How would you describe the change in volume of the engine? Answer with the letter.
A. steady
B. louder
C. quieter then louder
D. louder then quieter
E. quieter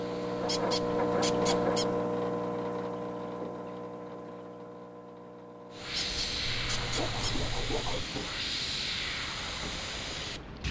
E.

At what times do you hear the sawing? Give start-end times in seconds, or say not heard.
0.3-1.9, 6.5-8.1.